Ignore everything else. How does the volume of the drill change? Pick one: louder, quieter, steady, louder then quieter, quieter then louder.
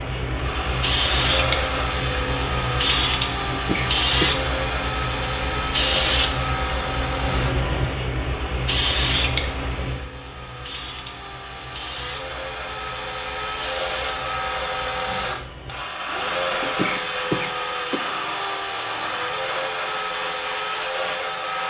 quieter then louder.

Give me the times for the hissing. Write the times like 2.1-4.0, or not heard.
0.0-21.6.